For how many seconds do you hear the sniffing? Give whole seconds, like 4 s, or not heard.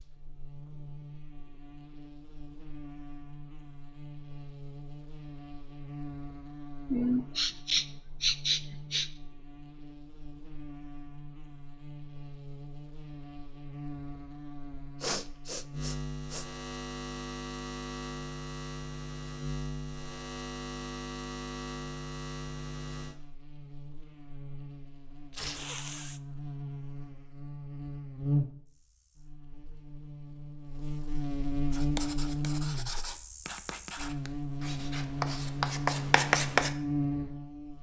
4 s.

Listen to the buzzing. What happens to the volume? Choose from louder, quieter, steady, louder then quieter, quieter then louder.
louder.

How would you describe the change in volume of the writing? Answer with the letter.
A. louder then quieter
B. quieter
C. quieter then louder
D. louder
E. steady
D.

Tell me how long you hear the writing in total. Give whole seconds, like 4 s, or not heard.
5 s.